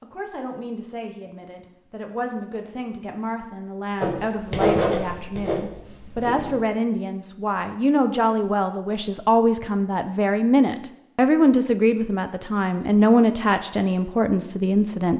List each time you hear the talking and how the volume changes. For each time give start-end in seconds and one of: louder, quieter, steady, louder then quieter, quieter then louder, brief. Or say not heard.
0.0-15.1 louder.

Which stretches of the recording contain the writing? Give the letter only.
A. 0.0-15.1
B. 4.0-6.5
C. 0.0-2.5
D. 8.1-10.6
B.